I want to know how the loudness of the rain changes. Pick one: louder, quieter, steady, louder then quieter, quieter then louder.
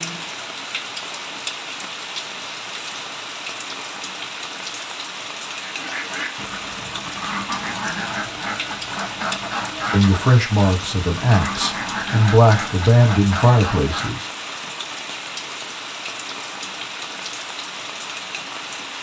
steady.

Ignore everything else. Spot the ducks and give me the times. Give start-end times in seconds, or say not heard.
5.5-14.3.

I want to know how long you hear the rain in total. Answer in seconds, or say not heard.
19 s.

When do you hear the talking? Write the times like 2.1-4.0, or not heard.
9.9-14.3.